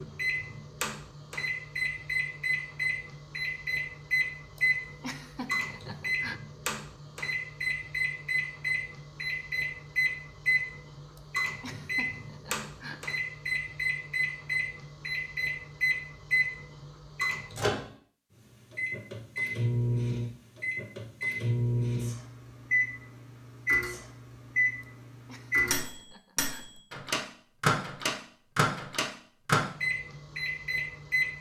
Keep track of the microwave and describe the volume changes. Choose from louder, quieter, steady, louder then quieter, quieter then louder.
steady.